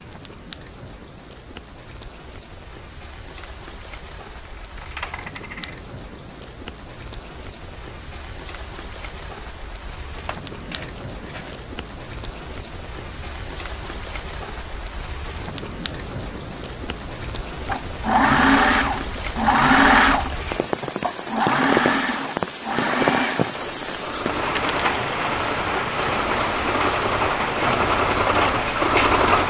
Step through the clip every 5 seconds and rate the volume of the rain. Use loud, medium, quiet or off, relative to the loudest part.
quiet, quiet, quiet, medium, loud, loud.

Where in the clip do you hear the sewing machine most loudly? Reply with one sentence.
The loudest moment of the sewing machine is at 20 seconds.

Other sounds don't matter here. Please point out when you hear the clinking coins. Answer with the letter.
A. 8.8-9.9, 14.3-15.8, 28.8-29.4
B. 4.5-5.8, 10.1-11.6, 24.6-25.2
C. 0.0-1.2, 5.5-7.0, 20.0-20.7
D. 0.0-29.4
B.